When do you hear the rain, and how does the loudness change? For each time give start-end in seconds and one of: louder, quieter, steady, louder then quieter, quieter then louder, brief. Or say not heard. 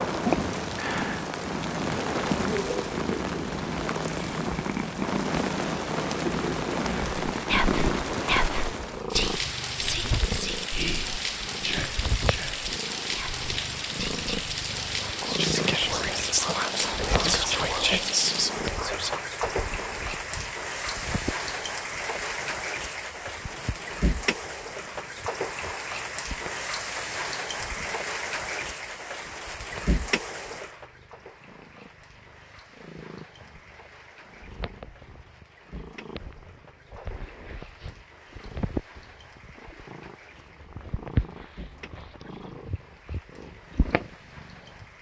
0.0-44.9 quieter.